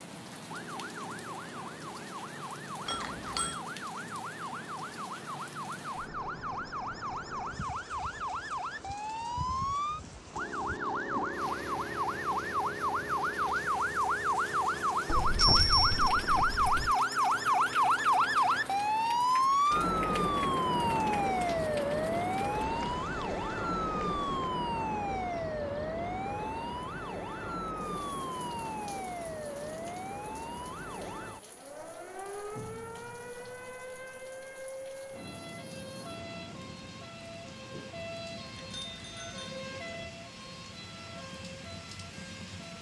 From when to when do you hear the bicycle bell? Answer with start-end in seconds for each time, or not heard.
2.9-3.6, 15.1-16.9, 38.8-39.6.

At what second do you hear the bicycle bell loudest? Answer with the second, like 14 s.
16 s.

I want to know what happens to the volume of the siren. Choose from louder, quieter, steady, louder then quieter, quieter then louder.
louder then quieter.